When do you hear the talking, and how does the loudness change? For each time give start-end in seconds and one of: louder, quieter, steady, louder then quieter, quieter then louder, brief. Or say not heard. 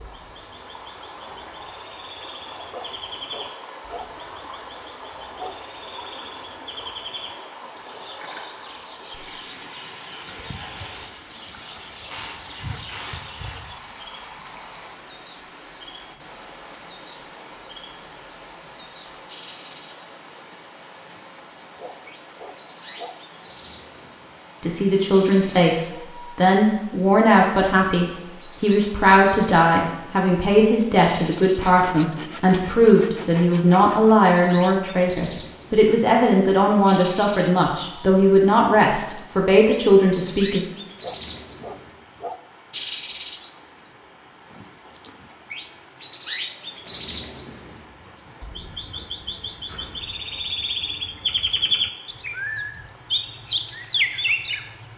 24.6-40.6 steady.